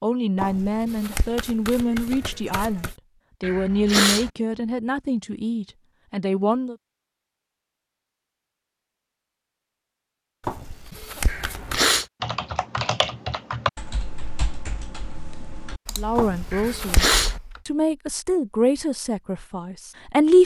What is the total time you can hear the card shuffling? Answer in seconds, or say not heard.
5 s.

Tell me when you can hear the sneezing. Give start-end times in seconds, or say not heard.
3.4-4.3, 11.2-12.1, 16.5-17.4.